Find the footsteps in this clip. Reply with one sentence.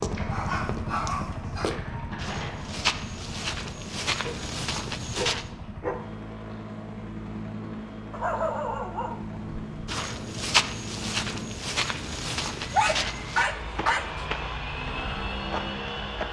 You can hear the footsteps from 0.0 to 5.5 s and from 9.8 to 16.2 s.